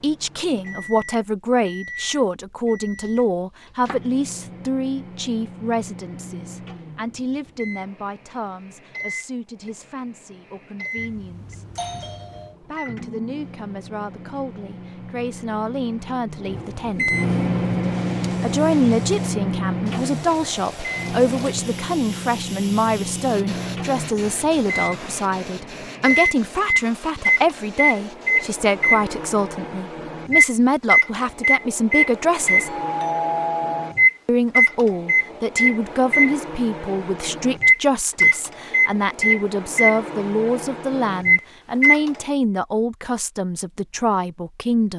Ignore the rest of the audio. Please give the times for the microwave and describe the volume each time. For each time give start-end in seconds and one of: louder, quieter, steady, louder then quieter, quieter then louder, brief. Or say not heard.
0.0-42.1 louder.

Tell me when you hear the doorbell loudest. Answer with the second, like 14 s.
33 s.